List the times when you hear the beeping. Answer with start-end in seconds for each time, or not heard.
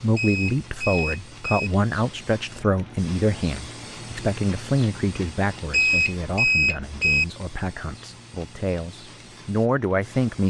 0.1-1.7, 5.7-7.2.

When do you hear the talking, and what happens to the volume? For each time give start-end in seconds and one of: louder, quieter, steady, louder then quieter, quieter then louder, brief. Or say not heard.
0.0-10.4 quieter then louder.